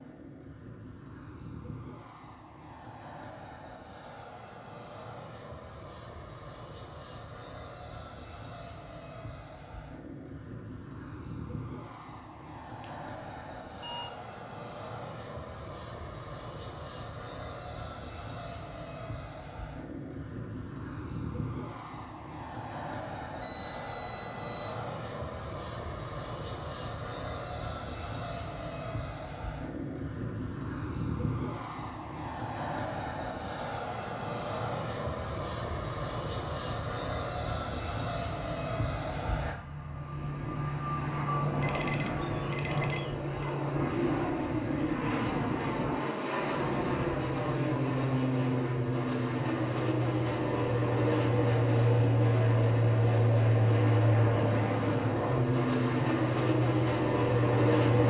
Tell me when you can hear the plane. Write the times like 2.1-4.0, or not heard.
0.0-58.0.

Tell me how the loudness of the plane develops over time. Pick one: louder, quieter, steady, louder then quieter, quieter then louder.
louder.